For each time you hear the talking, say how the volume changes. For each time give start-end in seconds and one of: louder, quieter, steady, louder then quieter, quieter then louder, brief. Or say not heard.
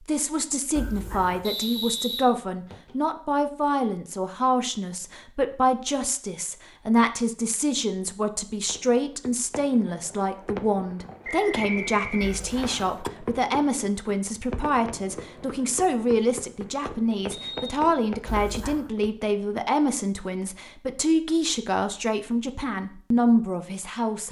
0.1-24.2 steady.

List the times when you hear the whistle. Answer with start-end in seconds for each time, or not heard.
1.4-2.9, 11.2-12.8, 17.3-17.8.